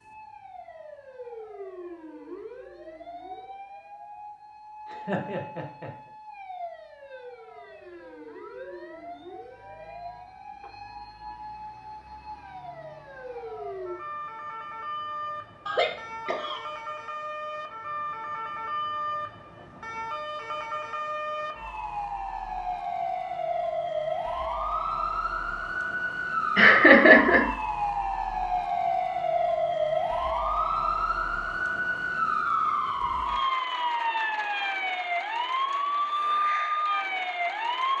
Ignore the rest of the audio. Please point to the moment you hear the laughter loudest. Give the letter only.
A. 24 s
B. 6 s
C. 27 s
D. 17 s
C.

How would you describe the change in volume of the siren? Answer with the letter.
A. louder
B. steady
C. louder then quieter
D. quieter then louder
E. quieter
A.